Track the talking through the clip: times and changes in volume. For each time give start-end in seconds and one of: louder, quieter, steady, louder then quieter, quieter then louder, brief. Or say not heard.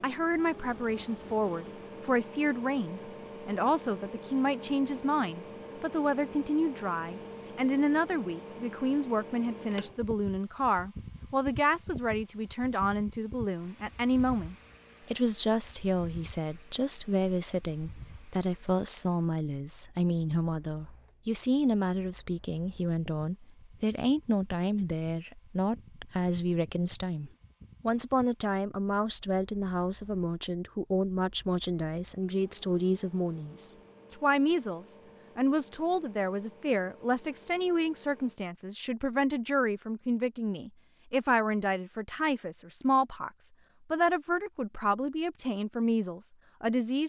0.0-47.0 steady.